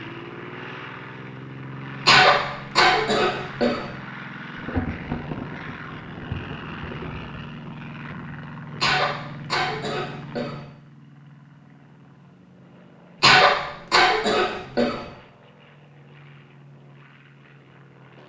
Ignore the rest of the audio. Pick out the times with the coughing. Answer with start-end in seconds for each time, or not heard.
2.0-3.9, 8.8-10.6, 13.2-15.0.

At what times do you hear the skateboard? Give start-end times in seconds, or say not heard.
not heard.